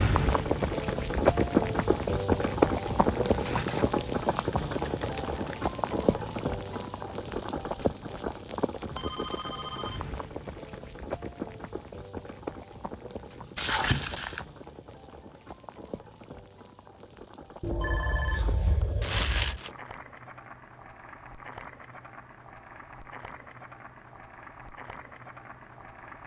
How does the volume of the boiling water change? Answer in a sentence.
The volume of the boiling water goes down.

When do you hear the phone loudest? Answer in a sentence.
The volume of the phone peaks at 18 seconds.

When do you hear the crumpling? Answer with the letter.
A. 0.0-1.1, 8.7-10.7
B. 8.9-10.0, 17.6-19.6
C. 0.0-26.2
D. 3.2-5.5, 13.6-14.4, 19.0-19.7
D.